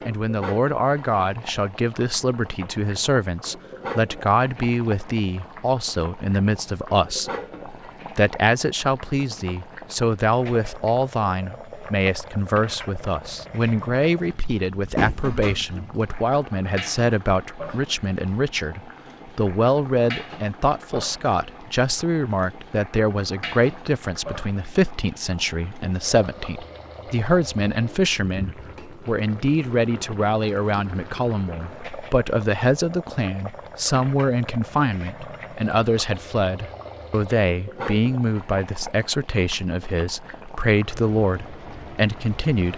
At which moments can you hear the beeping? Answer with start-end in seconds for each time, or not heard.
14.9-15.7.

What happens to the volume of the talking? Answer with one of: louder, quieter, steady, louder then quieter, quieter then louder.
steady.